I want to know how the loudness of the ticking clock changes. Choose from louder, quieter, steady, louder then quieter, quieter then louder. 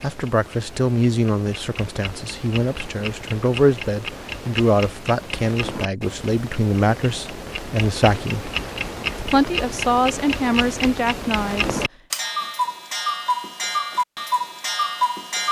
louder.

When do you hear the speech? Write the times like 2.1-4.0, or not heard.
0.0-8.5, 9.2-11.8.